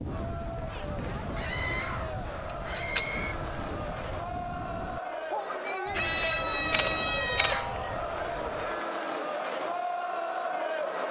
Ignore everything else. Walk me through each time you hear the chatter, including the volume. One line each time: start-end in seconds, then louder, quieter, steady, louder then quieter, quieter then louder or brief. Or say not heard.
0.0-11.0 louder.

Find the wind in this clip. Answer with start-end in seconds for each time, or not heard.
0.0-8.8.